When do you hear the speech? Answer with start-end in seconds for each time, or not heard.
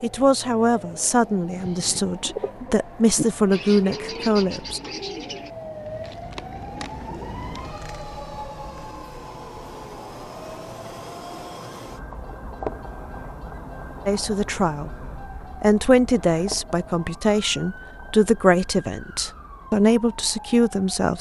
0.0-4.8, 14.1-21.1.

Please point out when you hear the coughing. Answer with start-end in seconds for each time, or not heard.
not heard.